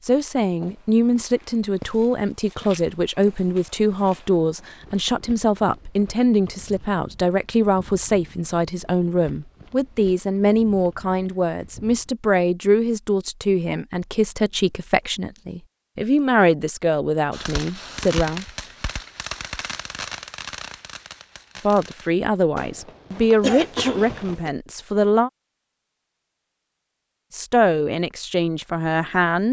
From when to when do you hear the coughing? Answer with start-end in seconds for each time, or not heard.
23.4-24.5.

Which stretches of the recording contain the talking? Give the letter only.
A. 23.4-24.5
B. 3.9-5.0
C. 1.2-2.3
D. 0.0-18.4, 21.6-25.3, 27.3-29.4
D.